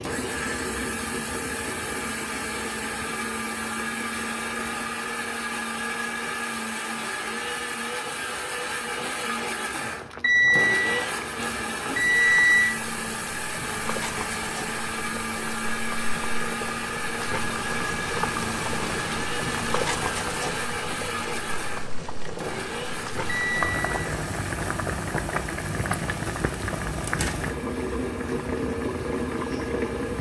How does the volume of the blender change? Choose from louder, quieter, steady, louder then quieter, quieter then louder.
quieter.